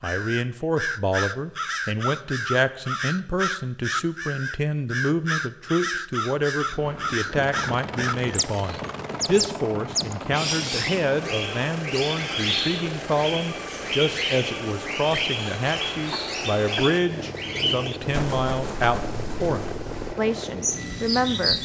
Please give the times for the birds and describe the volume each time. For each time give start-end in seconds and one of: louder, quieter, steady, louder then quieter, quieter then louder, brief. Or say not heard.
0.0-21.5 steady.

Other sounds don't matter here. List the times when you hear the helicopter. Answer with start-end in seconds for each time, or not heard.
6.6-21.5.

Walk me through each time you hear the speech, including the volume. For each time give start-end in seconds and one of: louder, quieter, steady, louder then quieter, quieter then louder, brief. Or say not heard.
0.0-21.5 steady.